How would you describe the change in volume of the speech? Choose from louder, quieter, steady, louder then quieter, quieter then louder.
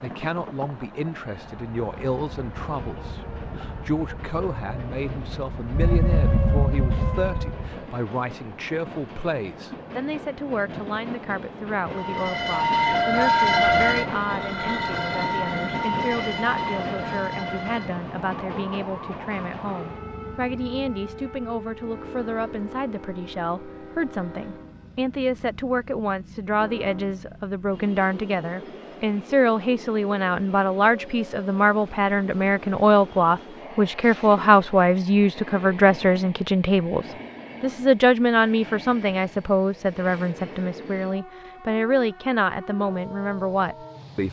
louder.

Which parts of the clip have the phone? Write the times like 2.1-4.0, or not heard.
not heard.